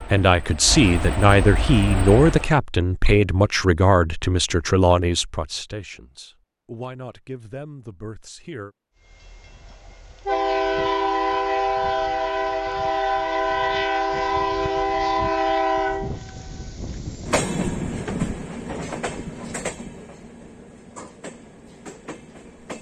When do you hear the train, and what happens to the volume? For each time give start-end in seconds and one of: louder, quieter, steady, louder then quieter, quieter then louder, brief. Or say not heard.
0.0-2.5 brief
9.1-22.7 quieter.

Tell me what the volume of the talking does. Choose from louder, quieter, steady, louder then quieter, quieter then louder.
quieter.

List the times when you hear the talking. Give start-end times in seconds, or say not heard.
0.0-8.8.